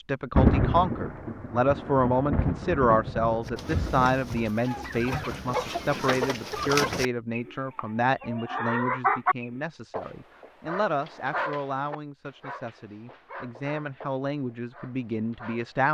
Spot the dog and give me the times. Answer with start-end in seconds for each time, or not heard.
9.9-15.8.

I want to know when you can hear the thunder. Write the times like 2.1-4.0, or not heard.
0.3-4.5.